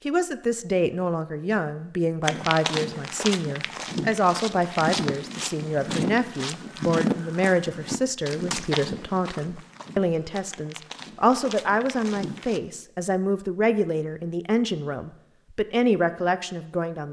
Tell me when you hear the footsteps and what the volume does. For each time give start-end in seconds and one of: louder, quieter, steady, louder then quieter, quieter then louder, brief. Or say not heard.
2.2-12.6 quieter.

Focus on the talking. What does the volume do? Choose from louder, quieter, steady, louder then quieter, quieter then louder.
steady.